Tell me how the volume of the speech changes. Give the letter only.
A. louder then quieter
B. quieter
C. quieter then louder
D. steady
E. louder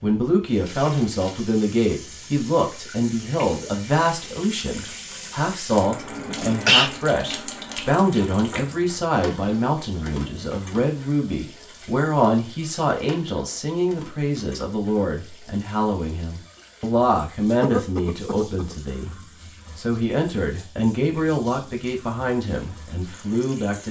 D.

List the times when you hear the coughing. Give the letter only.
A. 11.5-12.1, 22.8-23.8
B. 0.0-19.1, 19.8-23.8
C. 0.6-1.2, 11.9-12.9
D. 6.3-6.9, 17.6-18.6
D.